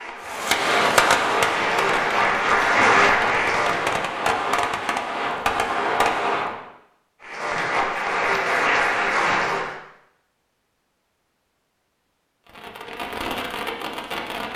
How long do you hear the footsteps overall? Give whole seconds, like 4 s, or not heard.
not heard.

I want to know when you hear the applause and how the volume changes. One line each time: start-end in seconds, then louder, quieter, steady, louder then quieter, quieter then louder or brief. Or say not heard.
0.0-4.0 louder
7.2-9.8 brief.